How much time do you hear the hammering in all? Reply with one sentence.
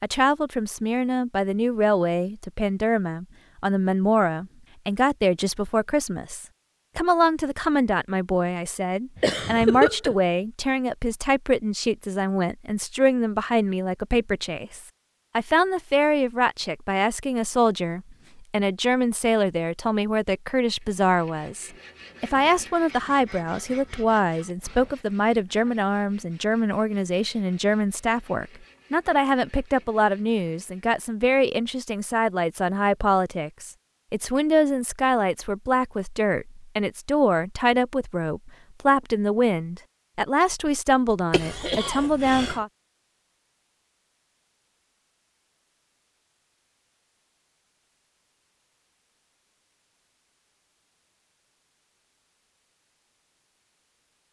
You can't hear the hammering here.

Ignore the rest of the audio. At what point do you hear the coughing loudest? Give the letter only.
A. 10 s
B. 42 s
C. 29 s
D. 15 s
A.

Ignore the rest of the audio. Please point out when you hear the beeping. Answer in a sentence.
The beeping can't be heard in this clip.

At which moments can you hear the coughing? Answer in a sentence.
You can hear the coughing from 9.2 to 10.2 s and from 41.3 to 42.6 s.